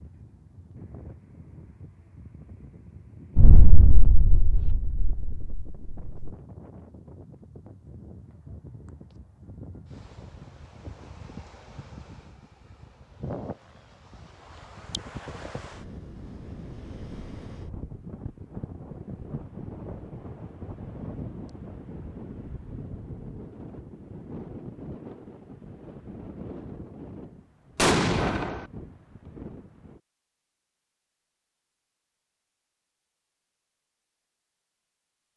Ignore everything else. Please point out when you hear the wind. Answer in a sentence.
You can hear the wind from 0.0 to 30.0 s.